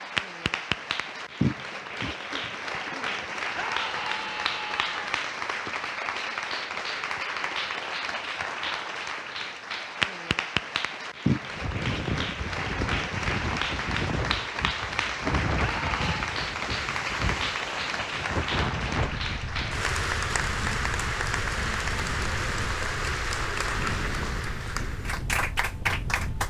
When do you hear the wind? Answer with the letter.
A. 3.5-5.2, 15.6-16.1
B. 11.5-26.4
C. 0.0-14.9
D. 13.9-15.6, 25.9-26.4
B.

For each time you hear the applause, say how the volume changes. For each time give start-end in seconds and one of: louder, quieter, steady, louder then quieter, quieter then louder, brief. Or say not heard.
0.0-26.4 steady.